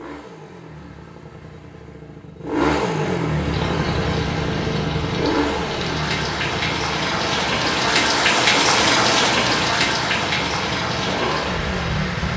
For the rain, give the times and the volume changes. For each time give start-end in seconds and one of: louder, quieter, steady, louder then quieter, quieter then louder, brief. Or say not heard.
3.4-12.3 louder then quieter.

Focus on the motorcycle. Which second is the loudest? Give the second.
3 s.